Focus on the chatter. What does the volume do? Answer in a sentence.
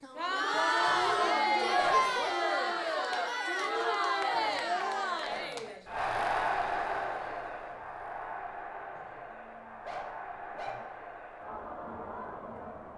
The loudness of the chatter goes down.